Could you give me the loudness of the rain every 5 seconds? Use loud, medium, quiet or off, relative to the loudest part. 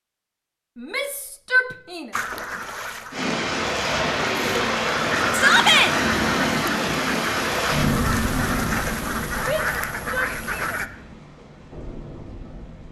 loud, loud, quiet.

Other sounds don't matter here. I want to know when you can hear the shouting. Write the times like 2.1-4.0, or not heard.
0.8-2.1, 5.3-5.9, 9.4-10.8.